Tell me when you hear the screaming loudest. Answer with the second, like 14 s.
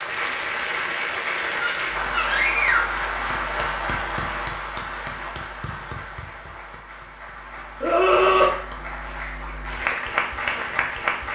8 s.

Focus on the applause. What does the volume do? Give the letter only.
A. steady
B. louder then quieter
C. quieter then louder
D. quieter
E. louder
C.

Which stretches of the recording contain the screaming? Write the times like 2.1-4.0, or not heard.
1.6-3.0, 7.8-8.5.